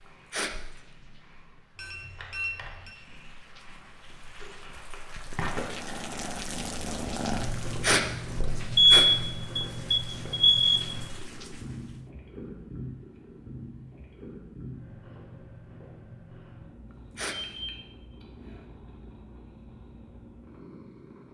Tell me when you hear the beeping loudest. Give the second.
9 s.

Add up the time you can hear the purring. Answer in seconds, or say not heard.
21 s.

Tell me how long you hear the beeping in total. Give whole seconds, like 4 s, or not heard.
4 s.